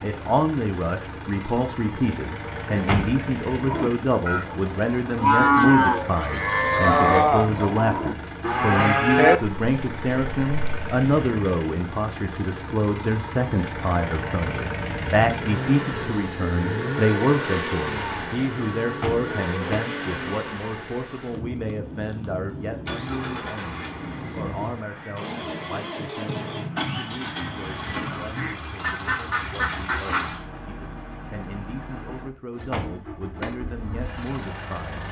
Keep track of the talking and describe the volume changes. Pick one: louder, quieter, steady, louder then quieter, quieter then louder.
quieter.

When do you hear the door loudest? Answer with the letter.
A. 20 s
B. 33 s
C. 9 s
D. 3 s
D.